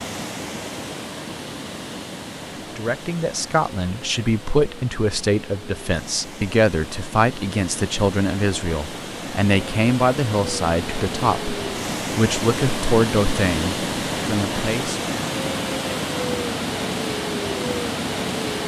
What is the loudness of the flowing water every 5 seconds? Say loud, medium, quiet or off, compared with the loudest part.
medium, medium, loud, loud.